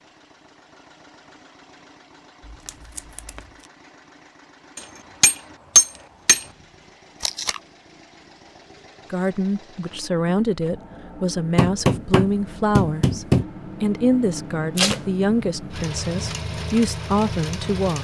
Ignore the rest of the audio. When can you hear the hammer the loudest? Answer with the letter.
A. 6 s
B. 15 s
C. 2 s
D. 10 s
A.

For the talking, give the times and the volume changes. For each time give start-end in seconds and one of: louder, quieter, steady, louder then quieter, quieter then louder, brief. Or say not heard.
9.1-17.9 steady.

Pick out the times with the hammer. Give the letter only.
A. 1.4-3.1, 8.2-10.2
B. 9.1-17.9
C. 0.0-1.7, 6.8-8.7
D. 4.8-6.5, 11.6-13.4
D.